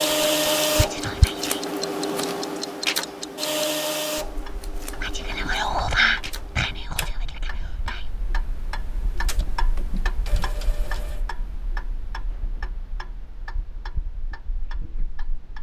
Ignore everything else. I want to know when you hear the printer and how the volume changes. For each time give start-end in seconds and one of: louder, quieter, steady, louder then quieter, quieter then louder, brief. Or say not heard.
0.0-7.2 quieter
9.2-11.2 brief.